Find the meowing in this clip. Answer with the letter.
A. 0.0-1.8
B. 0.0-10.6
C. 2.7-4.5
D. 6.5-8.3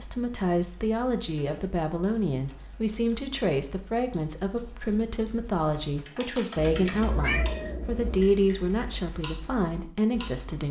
D.